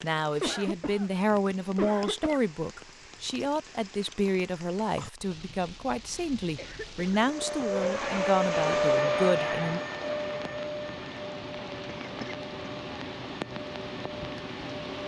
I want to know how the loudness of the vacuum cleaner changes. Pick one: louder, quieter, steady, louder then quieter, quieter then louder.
quieter.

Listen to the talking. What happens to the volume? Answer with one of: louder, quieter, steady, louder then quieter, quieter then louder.
steady.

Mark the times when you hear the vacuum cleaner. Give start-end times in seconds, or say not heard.
7.2-14.8.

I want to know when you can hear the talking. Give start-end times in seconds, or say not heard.
0.0-9.8.